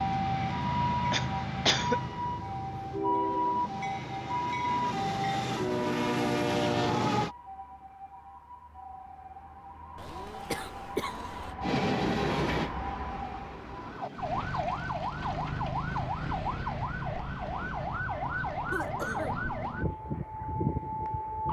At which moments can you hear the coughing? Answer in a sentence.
You can hear the coughing from 1.1 to 2.0 s, from 9.9 to 11.6 s and from 18.7 to 19.4 s.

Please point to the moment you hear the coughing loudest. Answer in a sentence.
The volume of the coughing peaks at 2 seconds.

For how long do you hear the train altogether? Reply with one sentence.
The train can be heard for 10 seconds in total.